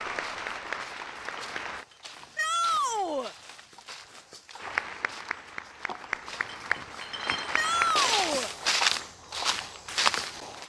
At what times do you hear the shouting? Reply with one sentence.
You can hear the shouting from 2.4 to 3.4 s and from 7.5 to 8.5 s.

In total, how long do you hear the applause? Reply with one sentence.
The applause can be heard for 5 seconds in total.